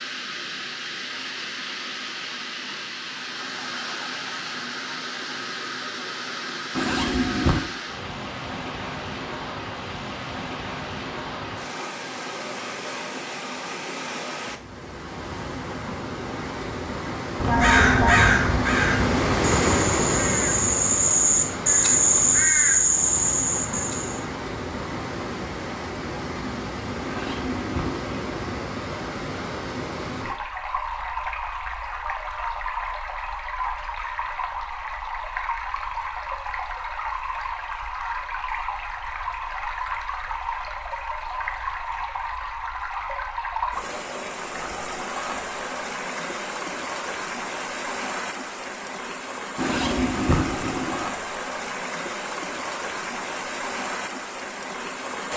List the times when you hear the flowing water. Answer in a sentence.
The flowing water can be heard from 0.0 to 55.3 s.